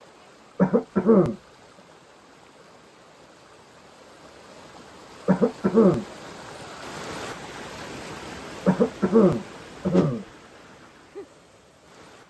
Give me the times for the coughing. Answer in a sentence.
You can hear the coughing from 0.6 to 1.4 s, from 5.2 to 6.0 s and from 8.7 to 10.2 s.